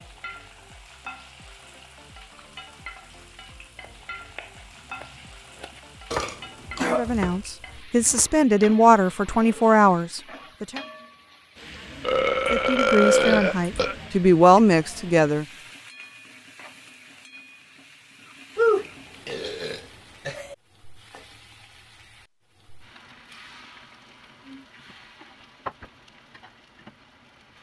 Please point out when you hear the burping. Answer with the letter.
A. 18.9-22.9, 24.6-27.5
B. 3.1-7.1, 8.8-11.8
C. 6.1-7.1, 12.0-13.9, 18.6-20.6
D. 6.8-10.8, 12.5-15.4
C.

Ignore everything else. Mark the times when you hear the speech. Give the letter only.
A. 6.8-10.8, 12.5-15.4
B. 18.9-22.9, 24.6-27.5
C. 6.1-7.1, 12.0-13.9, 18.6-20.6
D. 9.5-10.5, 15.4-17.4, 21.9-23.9
A.